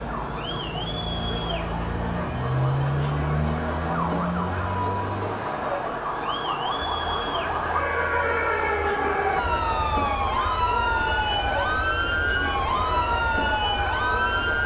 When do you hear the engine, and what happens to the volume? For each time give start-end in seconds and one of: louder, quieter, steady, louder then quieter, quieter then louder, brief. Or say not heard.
0.0-5.5 louder then quieter.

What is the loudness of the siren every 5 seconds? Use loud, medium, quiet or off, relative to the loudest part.
medium, loud, loud.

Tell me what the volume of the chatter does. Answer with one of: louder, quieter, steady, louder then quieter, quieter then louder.
steady.